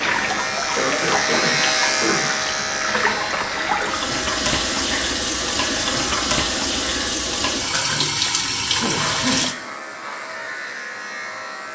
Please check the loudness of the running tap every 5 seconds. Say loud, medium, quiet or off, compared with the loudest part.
loud, loud, off.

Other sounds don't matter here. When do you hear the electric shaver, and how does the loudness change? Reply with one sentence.
You can hear the electric shaver from 0.0 to 7.1 s, getting quieter; and briefly from 8.8 to 11.7 s.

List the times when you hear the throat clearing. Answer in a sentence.
The throat clearing can be heard from 0.8 to 2.3 s and from 7.7 to 9.4 s.